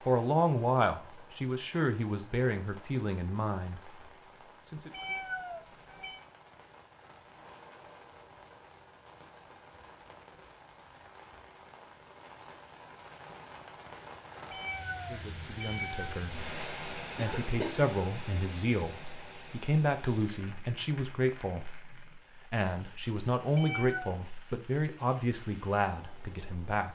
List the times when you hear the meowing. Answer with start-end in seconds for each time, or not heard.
4.9-6.2, 14.5-16.2, 23.6-24.2.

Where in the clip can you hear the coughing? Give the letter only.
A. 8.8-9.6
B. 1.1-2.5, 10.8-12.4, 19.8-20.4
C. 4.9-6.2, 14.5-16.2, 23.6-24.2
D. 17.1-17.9
D.